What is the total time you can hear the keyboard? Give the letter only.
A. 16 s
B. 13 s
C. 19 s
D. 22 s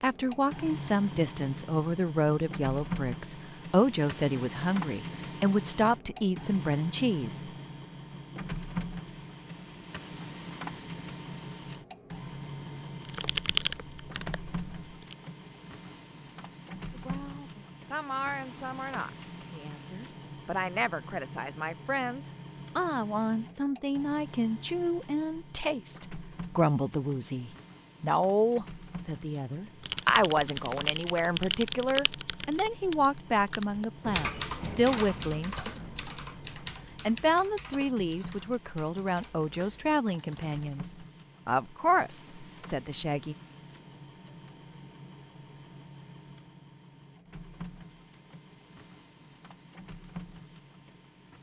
B.